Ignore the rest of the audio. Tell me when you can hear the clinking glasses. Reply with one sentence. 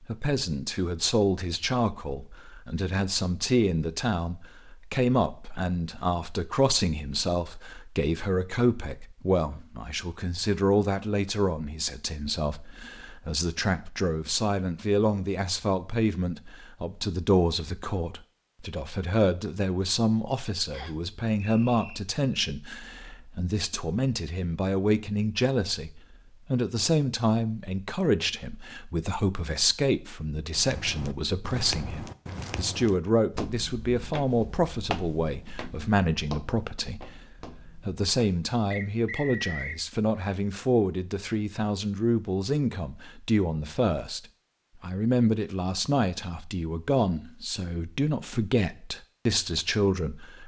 You can't hear the clinking glasses here.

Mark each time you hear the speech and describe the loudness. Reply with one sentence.
The speech can be heard from 0.0 to 50.4 s, at a steady volume.